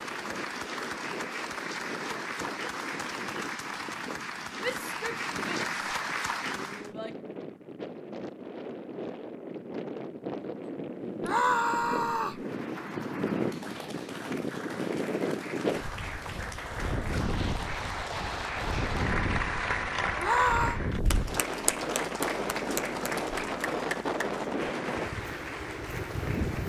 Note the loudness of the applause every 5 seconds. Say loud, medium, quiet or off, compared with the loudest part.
loud, loud, medium, loud, loud, medium.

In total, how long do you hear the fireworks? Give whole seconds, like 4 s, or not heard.
not heard.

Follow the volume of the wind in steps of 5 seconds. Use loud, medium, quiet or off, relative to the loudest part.
medium, medium, loud, loud, loud, loud.